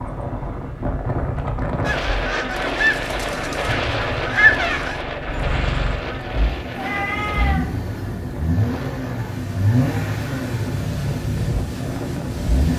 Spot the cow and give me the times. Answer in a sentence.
The cow can't be heard in this clip.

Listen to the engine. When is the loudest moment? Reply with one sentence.
The volume of the engine peaks at 10 seconds.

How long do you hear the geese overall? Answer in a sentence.
The geese can be heard for 4 seconds in total.